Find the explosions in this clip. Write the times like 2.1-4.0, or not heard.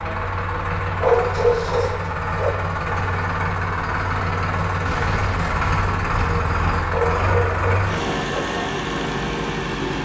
4.8-6.8.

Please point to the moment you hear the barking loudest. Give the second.
1 s.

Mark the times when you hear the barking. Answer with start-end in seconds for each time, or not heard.
0.9-2.5, 6.8-8.4.